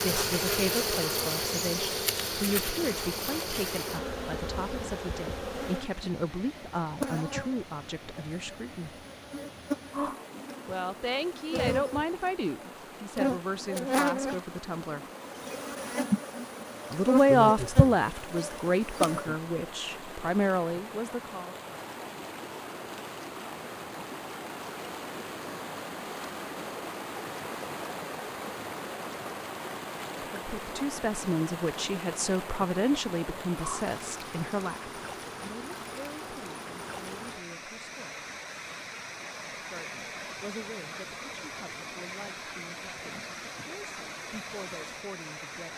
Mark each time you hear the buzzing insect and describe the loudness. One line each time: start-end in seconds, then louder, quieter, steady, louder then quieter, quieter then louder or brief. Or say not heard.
0.0-19.4 quieter then louder.